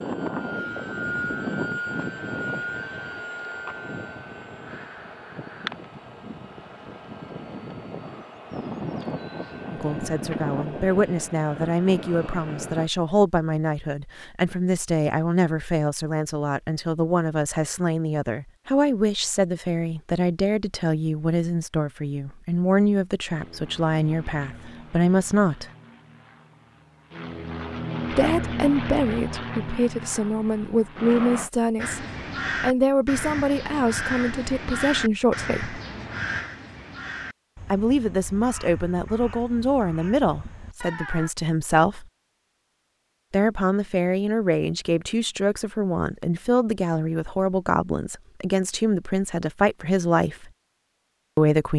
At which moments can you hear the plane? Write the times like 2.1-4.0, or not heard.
0.0-12.9, 23.2-31.5.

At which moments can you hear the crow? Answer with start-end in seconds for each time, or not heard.
31.8-41.3.